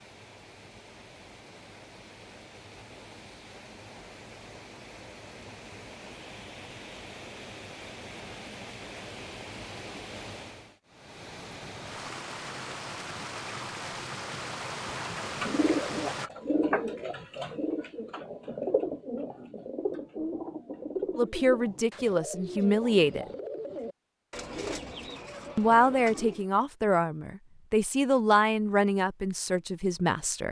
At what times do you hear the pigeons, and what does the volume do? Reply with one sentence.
You can hear the pigeons from 14.8 to 26.4 s, getting quieter.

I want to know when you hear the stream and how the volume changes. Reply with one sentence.
You can hear the stream from 0.0 to 16.3 s, getting louder.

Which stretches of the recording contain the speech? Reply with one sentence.
The speech can be heard from 21.1 to 23.3 s and from 25.6 to 30.4 s.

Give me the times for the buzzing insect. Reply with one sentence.
The buzzing insect can't be heard in this clip.